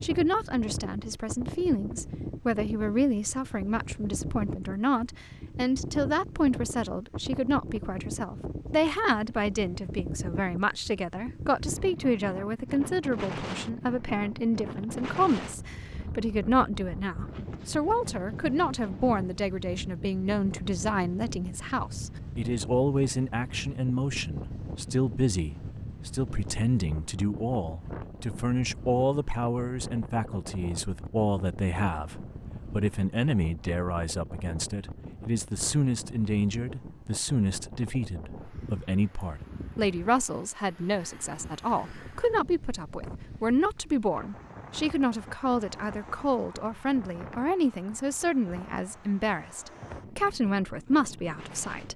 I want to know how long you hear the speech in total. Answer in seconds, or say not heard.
52 s.